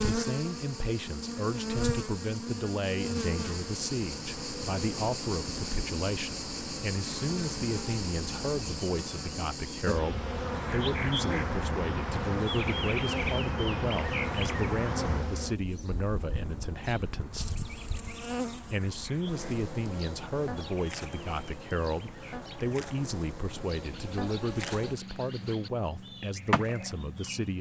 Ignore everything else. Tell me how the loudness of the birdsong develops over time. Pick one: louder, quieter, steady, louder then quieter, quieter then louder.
quieter.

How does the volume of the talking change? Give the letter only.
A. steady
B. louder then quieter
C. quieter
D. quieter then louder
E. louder
A.